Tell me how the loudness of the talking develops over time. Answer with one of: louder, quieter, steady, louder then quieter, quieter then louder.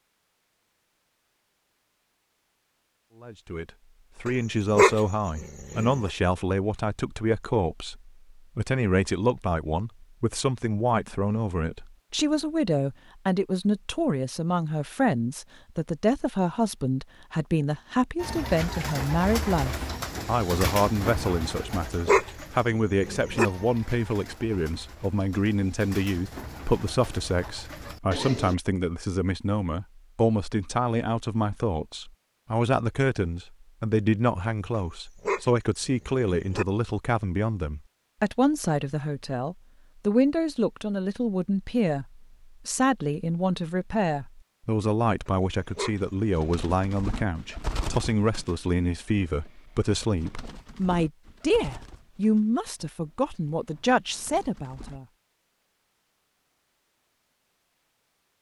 steady.